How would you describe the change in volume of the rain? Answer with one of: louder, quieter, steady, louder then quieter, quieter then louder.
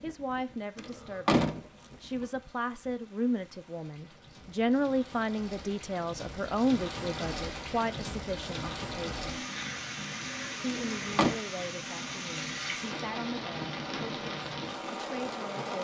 louder.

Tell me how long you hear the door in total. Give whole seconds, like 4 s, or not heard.
2 s.